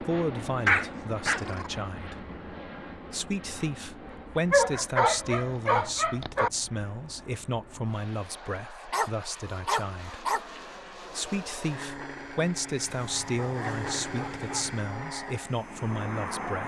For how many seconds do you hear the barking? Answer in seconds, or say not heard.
7 s.